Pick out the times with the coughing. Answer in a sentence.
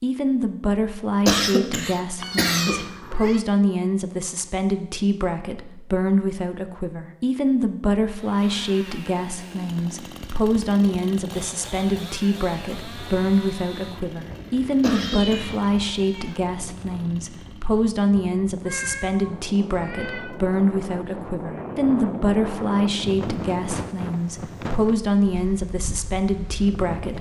The coughing can be heard from 1.2 to 2.8 s and from 14.8 to 15.6 s.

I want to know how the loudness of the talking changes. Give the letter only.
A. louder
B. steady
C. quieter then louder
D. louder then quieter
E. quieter
B.